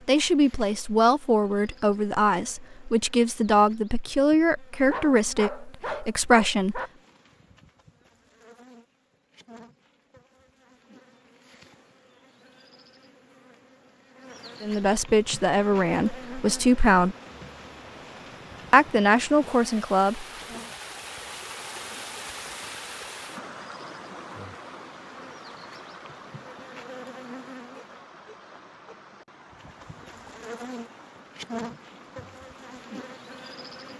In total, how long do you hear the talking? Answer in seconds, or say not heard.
11 s.